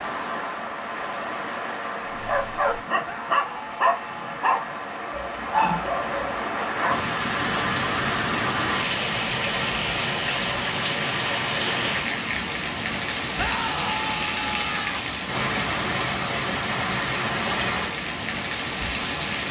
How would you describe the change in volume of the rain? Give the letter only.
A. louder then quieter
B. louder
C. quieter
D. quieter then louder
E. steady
B.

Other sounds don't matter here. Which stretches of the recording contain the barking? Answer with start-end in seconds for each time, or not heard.
2.1-7.1.